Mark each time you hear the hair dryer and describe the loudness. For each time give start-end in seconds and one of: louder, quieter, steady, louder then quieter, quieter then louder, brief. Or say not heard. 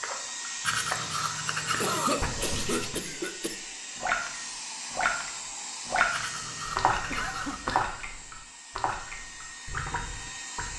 0.0-10.7 quieter.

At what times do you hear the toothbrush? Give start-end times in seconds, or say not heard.
0.6-3.0, 6.1-7.6.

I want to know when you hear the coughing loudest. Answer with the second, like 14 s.
2 s.